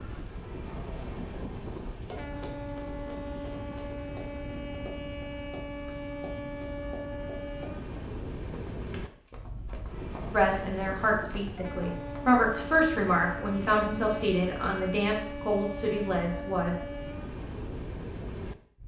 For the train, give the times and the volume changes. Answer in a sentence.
The train can be heard from 0.0 to 18.8 s, at a steady volume.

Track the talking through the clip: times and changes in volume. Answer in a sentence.
You can hear the talking from 10.3 to 16.8 s, getting louder then quieter.